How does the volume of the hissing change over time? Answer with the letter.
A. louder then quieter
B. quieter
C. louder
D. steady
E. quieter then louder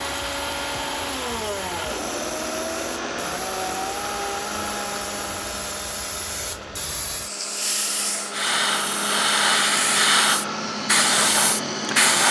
C.